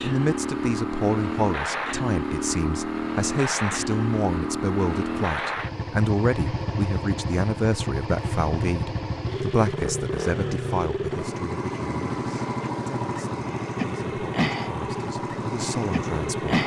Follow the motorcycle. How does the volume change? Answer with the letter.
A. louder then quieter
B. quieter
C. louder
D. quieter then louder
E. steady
E.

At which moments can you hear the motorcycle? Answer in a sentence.
The motorcycle can be heard from 0.0 to 16.6 s.